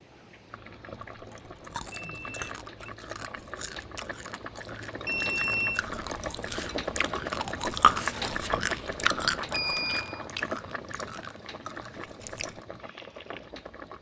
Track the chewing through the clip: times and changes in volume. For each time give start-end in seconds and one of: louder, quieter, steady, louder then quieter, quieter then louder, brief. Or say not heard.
1.0-12.6 louder then quieter.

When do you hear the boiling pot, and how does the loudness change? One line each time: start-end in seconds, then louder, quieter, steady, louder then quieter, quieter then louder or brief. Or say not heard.
0.0-13.9 louder then quieter.